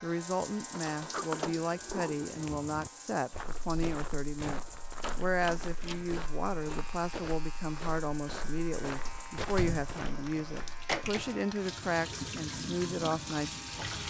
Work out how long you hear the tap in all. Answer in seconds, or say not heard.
14 s.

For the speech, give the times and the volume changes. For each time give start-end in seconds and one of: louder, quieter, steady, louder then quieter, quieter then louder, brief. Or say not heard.
0.0-13.6 steady.